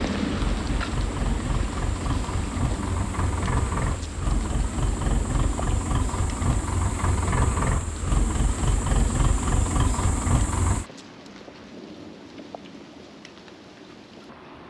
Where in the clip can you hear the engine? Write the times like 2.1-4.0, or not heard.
0.1-10.8.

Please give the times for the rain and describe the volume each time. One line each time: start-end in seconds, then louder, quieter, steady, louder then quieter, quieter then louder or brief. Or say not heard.
0.0-14.6 quieter.